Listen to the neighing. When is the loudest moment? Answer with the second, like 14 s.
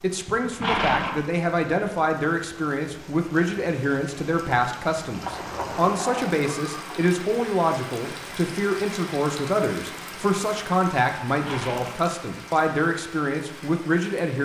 1 s.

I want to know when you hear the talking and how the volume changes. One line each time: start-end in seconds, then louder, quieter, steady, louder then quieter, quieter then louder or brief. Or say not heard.
0.0-14.4 steady.